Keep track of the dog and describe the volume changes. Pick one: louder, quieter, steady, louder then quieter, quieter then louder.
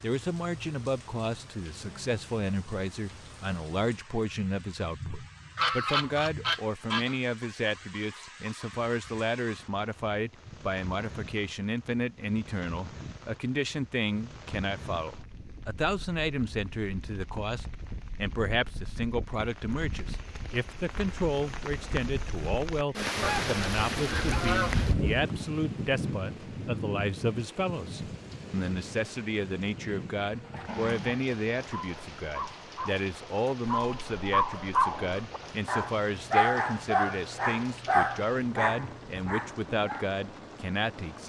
louder.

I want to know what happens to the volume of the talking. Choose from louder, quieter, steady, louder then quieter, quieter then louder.
steady.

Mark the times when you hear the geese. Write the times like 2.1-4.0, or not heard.
5.5-7.2, 23.2-25.2.